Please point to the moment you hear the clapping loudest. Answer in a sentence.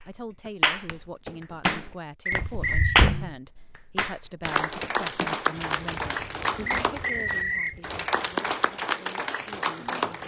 The volume of the clapping peaks at 3 seconds.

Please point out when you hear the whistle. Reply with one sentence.
You can hear the whistle from 2.2 to 3.0 s and from 6.7 to 7.8 s.